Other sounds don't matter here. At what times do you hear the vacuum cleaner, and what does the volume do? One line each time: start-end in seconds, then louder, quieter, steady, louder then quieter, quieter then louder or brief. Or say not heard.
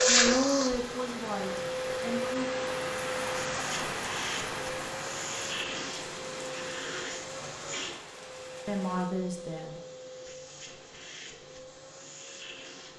0.0-12.9 quieter.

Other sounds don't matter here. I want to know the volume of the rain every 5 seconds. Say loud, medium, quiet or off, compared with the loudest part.
loud, medium, off.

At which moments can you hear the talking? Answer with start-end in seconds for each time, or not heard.
0.1-2.5, 8.7-9.8.